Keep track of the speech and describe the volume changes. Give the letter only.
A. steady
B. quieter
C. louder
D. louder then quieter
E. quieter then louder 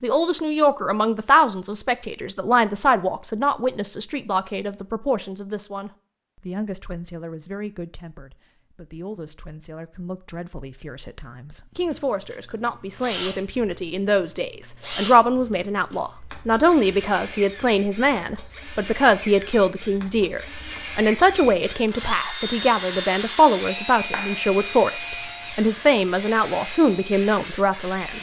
E.